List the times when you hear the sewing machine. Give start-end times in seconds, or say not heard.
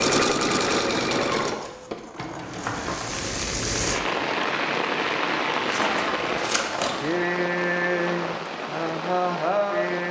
0.0-3.0.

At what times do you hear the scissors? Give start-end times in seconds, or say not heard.
1.4-3.3, 5.7-7.1.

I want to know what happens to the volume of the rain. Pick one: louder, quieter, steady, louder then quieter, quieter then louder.
steady.